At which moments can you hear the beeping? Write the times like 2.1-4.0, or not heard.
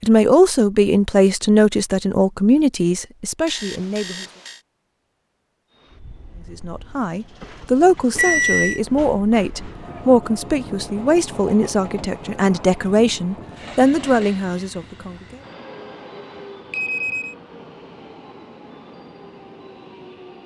3.5-4.6, 8.2-8.8, 16.7-17.4.